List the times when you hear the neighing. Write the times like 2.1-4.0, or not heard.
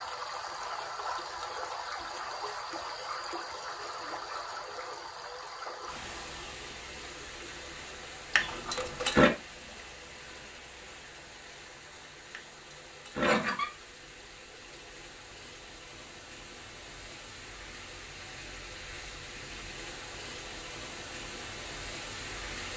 8.3-9.3, 12.3-13.7.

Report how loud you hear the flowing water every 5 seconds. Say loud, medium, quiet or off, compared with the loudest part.
loud, medium, medium, medium, loud.